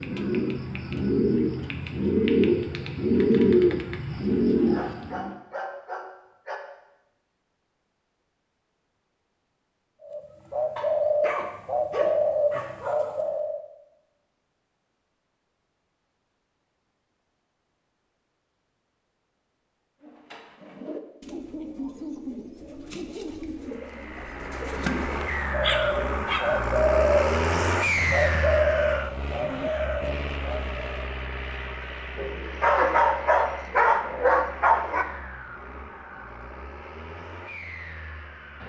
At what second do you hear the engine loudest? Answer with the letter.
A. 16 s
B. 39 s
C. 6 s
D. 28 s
D.